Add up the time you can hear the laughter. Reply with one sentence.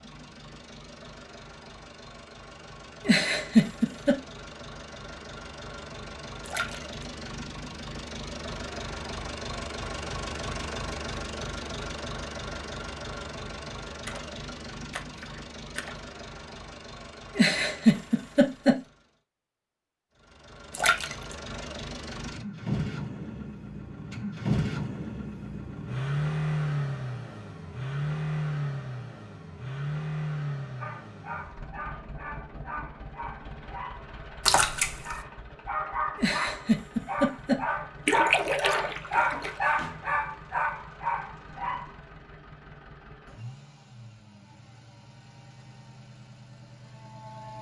The laughter can be heard for 4 seconds in total.